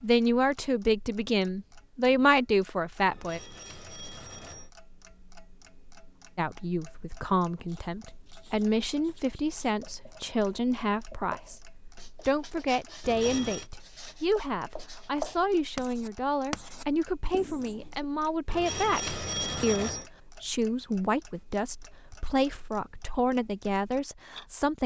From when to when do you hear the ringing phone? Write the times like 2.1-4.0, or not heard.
3.1-4.7, 13.0-13.7, 18.4-20.1.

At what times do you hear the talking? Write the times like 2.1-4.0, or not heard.
0.0-3.4, 6.3-24.8.